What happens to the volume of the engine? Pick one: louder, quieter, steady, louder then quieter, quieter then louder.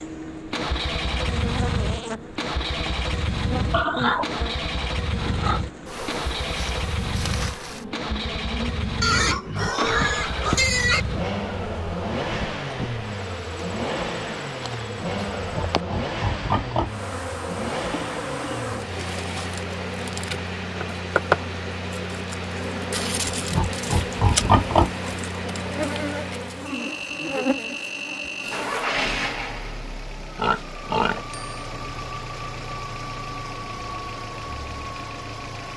steady.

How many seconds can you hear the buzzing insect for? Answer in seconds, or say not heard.
29 s.